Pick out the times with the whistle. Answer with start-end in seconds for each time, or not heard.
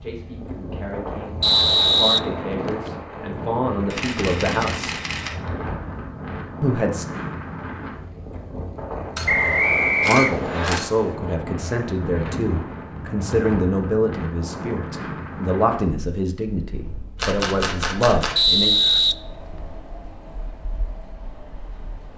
1.4-2.9, 9.2-10.8, 18.4-19.1.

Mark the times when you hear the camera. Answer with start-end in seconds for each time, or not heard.
3.9-5.3, 9.2-11.2, 17.1-19.0.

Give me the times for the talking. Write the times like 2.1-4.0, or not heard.
0.0-5.0, 6.6-7.0, 10.1-18.7.